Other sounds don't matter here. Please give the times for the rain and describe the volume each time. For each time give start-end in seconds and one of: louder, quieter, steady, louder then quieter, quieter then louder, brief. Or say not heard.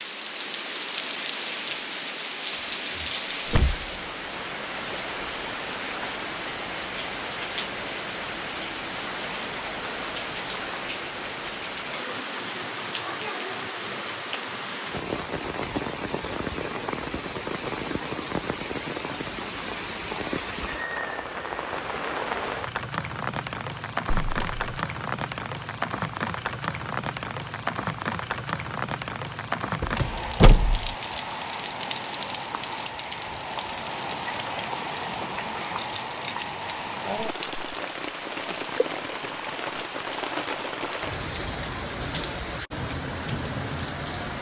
0.0-44.3 steady.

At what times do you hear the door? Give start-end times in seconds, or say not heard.
2.5-3.9, 24.1-24.7, 29.8-30.9.